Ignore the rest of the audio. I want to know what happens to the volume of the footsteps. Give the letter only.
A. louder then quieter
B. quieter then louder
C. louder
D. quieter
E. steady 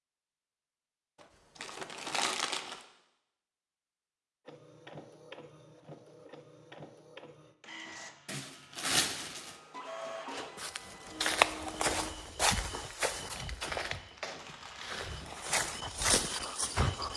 B.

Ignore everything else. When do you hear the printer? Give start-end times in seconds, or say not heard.
4.5-12.2.